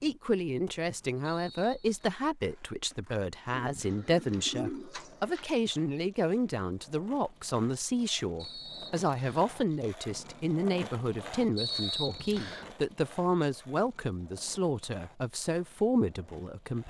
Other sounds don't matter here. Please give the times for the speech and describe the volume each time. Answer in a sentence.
You can hear the speech from 0.0 to 16.8 s, at a steady volume.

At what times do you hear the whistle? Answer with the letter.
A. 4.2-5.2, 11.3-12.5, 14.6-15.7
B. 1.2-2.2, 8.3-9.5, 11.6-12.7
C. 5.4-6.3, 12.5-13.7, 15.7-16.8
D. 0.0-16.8
B.